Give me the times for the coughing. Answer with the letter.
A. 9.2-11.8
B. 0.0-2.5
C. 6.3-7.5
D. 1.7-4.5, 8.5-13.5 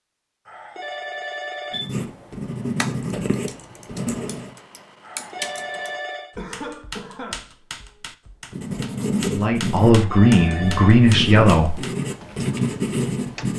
C.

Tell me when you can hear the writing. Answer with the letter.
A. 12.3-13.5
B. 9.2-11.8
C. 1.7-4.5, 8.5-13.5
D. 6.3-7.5
C.